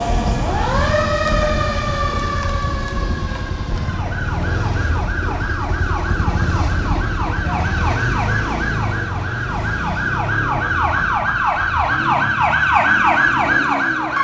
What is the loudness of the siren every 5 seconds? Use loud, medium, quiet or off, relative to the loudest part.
medium, medium, loud.